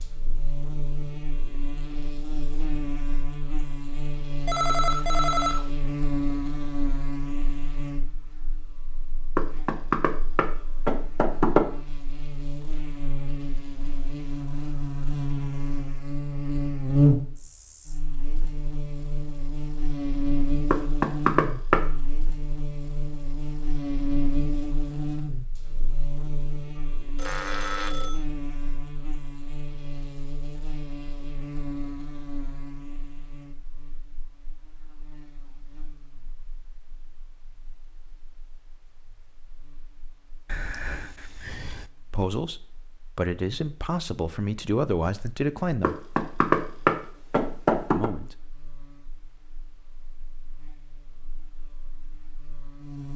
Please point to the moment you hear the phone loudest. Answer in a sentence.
The volume of the phone peaks at 5 seconds.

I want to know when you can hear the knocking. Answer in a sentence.
The knocking can be heard from 9.3 to 11.7 s, from 20.7 to 21.9 s and from 45.8 to 48.1 s.